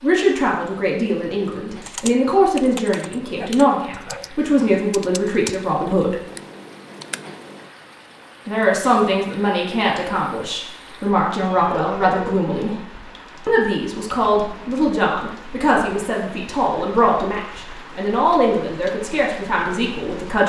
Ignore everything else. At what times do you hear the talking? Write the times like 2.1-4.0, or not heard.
0.0-6.2, 8.4-12.8, 13.4-20.4.